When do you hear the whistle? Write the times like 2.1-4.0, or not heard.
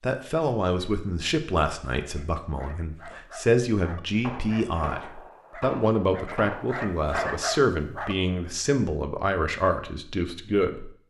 not heard.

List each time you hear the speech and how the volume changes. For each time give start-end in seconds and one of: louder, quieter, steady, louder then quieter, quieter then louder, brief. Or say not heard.
0.0-11.0 steady.